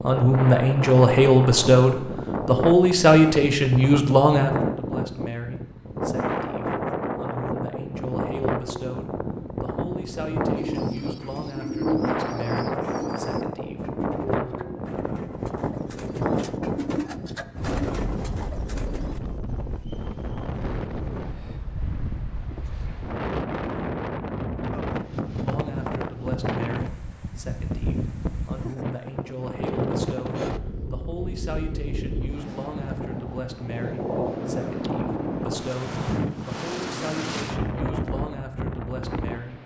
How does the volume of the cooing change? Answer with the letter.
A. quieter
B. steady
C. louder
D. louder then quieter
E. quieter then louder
E.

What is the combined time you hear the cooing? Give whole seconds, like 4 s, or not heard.
9 s.